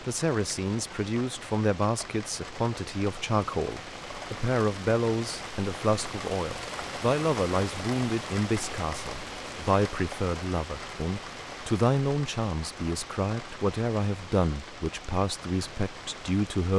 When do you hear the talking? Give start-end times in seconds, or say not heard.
0.0-16.7.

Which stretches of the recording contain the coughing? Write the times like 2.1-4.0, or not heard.
not heard.